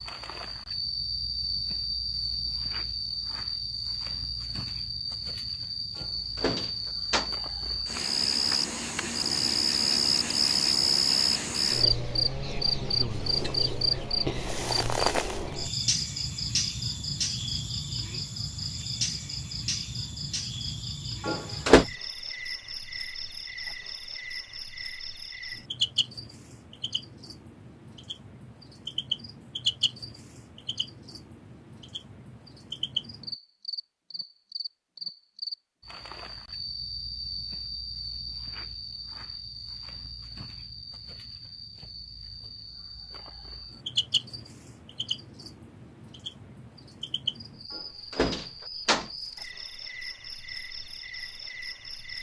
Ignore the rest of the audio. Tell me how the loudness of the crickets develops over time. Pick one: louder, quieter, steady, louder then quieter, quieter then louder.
quieter.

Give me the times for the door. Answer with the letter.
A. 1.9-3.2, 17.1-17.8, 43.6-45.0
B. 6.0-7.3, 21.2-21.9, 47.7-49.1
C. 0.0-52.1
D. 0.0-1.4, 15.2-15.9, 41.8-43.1
B.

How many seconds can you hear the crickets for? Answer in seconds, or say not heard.
52 s.